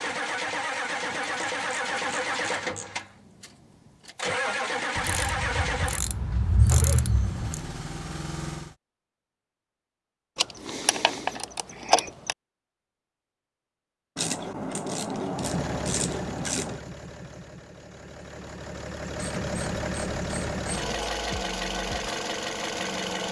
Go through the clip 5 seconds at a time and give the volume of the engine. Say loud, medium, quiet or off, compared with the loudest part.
loud, loud, off, medium, loud.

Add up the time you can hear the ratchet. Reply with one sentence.
You can hear the ratchet for 11 seconds altogether.